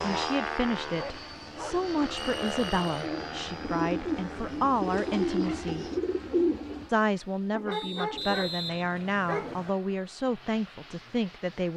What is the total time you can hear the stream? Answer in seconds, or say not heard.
not heard.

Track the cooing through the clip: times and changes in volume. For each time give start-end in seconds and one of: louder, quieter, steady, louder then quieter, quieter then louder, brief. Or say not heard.
0.7-6.9 louder.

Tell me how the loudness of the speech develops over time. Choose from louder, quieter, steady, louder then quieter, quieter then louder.
steady.